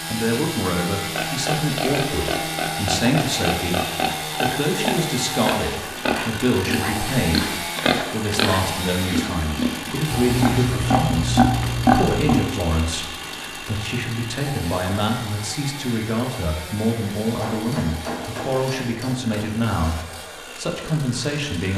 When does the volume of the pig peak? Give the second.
12 s.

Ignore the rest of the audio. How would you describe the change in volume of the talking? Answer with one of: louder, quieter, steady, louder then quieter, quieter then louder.
steady.